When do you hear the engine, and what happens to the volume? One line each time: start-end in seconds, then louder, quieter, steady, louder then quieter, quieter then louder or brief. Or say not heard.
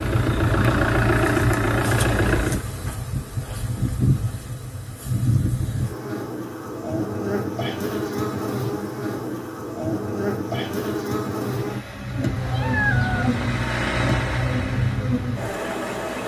0.0-2.6 brief
11.4-16.2 louder then quieter.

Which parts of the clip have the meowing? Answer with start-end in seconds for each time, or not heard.
12.3-13.9.